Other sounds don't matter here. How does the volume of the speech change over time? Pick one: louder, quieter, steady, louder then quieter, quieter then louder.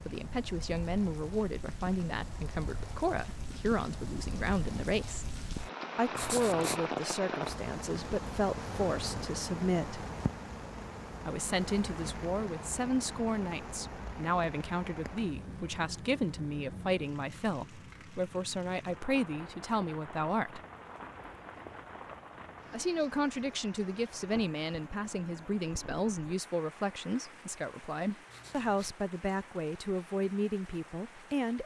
steady.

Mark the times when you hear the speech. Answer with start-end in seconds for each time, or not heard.
0.1-5.2, 6.0-10.1, 11.2-20.6, 22.7-31.6.